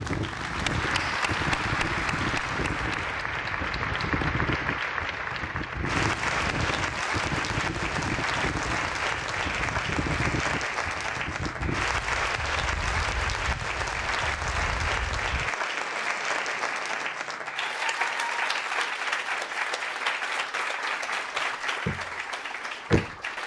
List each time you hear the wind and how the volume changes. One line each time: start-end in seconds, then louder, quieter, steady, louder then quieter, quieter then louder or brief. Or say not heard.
0.0-15.5 quieter.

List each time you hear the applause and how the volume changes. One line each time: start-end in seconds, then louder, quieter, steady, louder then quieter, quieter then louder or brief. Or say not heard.
0.0-23.4 steady.